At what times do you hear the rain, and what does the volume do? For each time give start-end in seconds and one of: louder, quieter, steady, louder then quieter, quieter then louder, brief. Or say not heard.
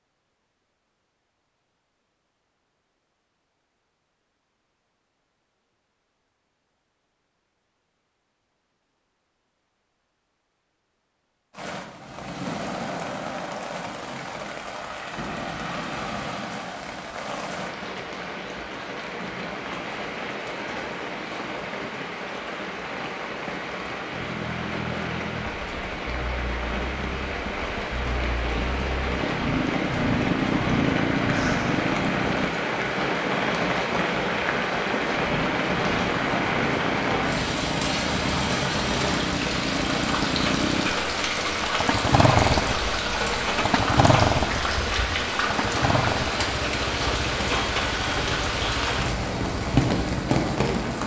11.5-51.0 louder.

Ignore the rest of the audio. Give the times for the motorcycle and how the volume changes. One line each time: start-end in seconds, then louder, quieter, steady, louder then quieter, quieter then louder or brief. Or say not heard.
24.1-32.5 quieter then louder
35.0-51.0 louder then quieter.